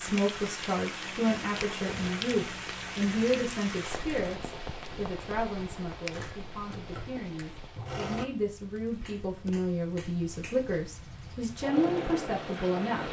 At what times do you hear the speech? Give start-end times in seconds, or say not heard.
0.0-13.0.